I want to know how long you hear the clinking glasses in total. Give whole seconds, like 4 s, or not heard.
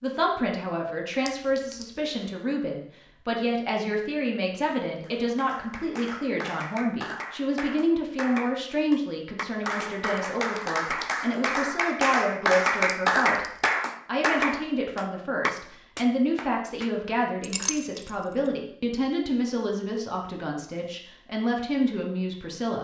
2 s.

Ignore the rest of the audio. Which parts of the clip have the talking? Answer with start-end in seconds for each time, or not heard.
0.0-13.4, 14.1-22.7.